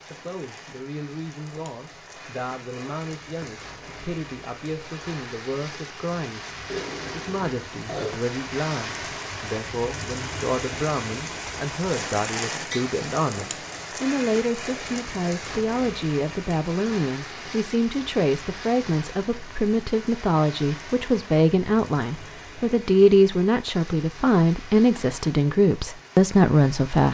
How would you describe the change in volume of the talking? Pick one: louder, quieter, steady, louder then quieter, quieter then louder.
louder.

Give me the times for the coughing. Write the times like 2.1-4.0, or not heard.
6.7-8.2.